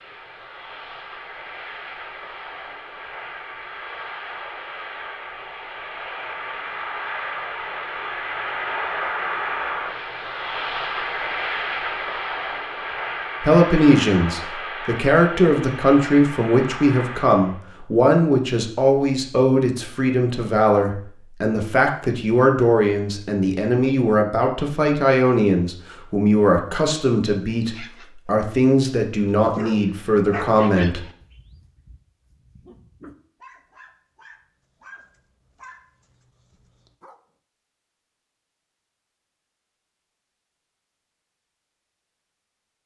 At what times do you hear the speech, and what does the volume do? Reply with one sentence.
The speech can be heard from 13.4 to 31.1 s, at a steady volume.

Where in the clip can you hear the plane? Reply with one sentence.
You can hear the plane from 0.0 to 17.6 s.